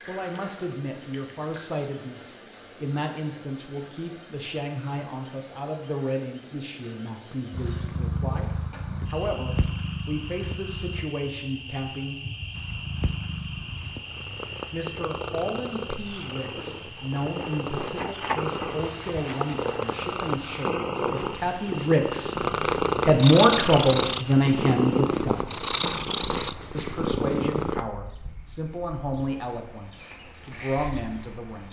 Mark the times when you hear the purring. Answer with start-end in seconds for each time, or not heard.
7.5-11.1, 12.5-27.9.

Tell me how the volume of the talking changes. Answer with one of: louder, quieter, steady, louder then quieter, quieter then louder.
louder then quieter.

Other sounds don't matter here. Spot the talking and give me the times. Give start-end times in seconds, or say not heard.
0.1-12.2, 14.7-25.6, 26.7-31.6.